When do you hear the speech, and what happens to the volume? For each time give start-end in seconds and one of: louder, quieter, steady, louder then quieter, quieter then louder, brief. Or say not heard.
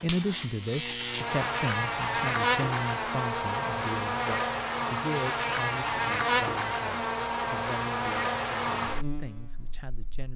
0.0-10.3 quieter.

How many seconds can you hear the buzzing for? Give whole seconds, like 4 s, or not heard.
10 s.